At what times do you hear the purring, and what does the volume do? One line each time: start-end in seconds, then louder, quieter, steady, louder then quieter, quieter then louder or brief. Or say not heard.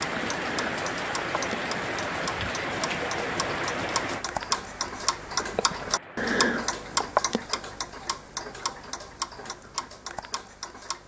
not heard.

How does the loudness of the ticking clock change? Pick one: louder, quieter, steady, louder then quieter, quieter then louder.
louder then quieter.